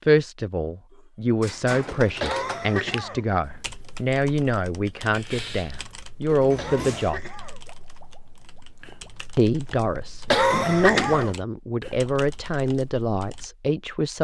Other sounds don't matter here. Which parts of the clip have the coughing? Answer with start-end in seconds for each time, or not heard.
2.2-3.2, 6.5-7.6, 10.2-11.3.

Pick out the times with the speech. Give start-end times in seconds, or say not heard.
0.1-7.2, 9.3-14.1.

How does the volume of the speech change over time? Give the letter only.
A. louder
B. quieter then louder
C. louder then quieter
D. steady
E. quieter
D.